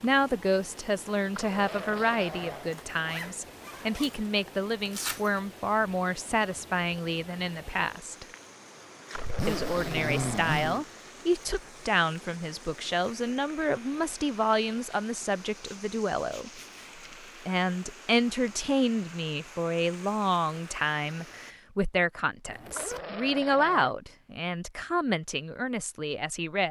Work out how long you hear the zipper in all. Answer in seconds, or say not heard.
4 s.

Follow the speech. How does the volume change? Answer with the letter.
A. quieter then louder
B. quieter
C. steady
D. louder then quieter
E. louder
C.